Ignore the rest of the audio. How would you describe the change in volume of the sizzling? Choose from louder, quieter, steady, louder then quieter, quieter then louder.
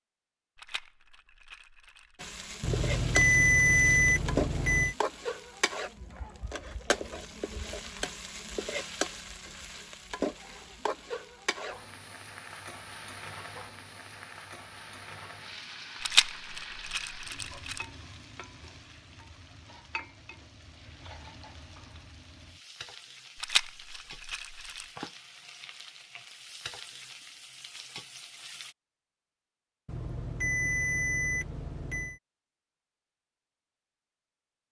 quieter.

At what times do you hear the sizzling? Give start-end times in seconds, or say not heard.
2.1-28.8.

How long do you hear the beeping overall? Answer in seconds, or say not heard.
5 s.